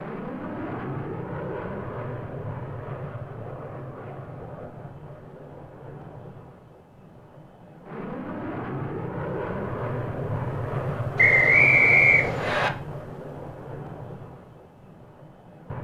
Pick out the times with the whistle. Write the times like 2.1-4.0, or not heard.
11.2-12.7.